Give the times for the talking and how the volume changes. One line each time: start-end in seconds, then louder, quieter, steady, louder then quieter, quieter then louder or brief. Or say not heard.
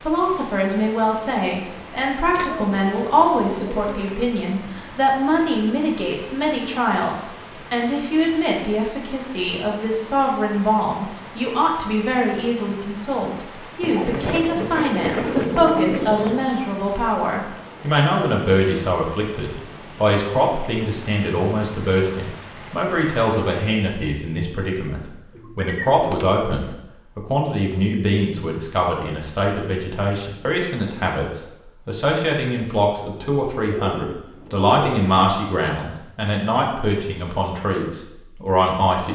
0.0-39.1 steady.